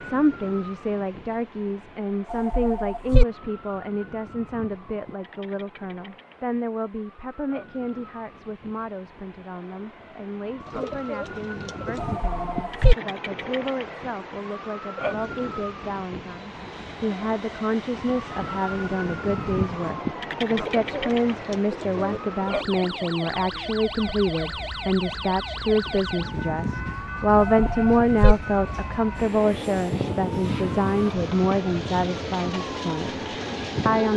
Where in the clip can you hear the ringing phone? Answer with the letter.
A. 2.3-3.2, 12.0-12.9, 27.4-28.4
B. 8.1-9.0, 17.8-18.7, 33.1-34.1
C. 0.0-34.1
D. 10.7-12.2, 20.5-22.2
A.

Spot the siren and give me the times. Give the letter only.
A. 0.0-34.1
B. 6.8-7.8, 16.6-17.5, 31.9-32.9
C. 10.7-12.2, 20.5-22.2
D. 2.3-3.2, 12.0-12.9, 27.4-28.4
A.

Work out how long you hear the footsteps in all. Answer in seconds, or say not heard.
not heard.